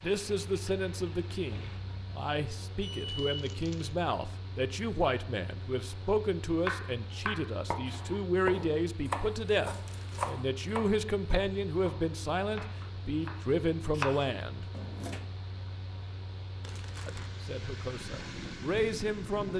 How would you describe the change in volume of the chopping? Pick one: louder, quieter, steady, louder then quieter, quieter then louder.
quieter then louder.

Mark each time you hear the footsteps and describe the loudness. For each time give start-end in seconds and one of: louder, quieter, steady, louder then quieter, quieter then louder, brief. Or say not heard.
not heard.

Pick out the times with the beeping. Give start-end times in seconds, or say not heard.
2.8-3.5.